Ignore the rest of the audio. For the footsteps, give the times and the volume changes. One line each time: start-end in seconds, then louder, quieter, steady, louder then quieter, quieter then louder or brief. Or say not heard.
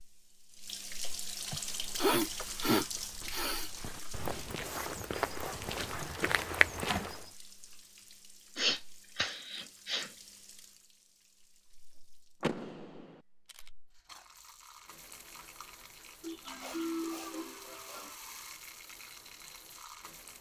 1.6-7.3 louder.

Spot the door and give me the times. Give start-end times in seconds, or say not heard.
5.9-7.2, 12.4-13.2.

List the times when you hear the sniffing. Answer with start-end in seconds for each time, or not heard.
1.5-3.7, 8.6-10.1, 16.2-18.1.